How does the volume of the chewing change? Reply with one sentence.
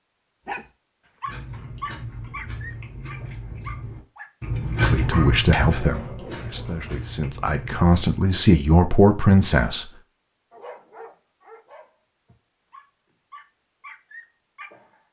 The volume of the chewing goes up, then down.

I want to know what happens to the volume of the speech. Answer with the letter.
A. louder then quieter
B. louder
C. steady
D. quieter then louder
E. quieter
D.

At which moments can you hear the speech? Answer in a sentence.
You can hear the speech from 4.8 to 9.8 s.